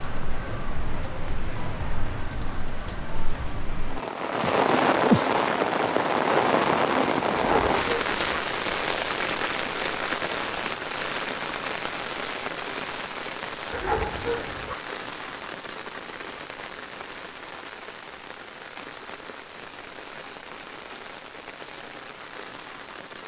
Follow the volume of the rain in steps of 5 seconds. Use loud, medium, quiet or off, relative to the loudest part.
medium, loud, medium, quiet, quiet.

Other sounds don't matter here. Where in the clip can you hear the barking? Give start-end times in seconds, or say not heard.
7.3-8.2, 13.7-14.8.